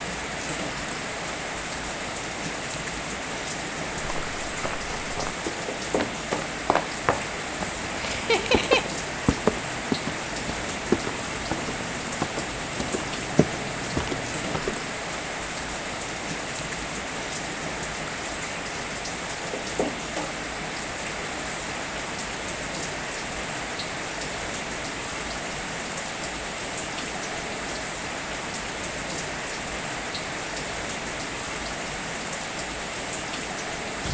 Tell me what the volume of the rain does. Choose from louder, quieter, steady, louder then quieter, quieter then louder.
steady.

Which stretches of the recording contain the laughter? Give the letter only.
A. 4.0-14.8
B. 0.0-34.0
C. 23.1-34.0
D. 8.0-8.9
D.